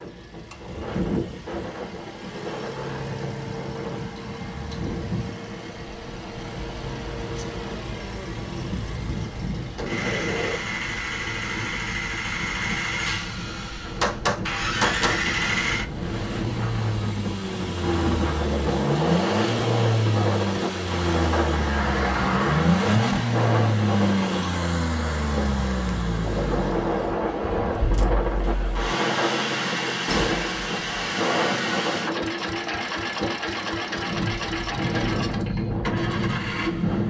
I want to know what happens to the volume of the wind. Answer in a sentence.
The volume of the wind goes up.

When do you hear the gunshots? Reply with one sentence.
The gunshots can be heard from 8.6 to 10.6 s, from 14.0 to 15.2 s and from 30.1 to 30.9 s.